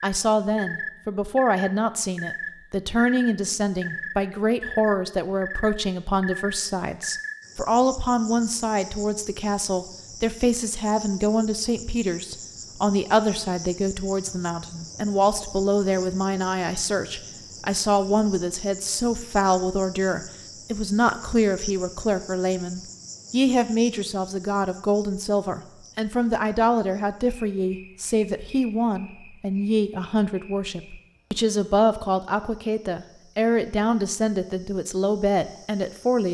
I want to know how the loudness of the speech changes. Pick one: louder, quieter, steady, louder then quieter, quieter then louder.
steady.